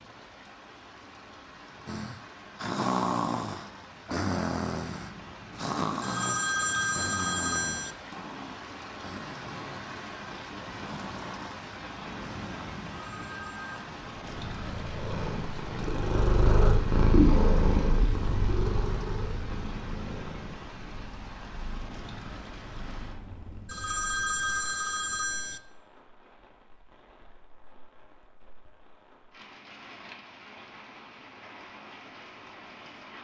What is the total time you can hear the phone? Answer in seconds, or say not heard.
5 s.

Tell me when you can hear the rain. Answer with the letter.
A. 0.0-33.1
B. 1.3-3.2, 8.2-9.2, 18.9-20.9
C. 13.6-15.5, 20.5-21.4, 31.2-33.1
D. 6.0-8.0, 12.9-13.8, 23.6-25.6
A.